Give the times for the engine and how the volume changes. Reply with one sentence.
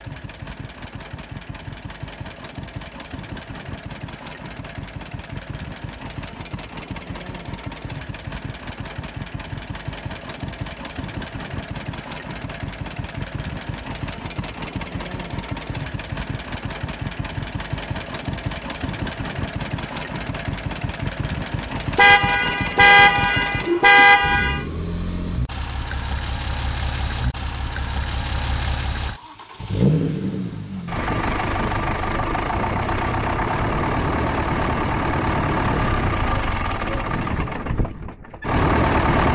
The engine can be heard from 0.0 to 39.3 s, getting louder.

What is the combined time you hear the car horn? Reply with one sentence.
The car horn can be heard for 3 seconds in total.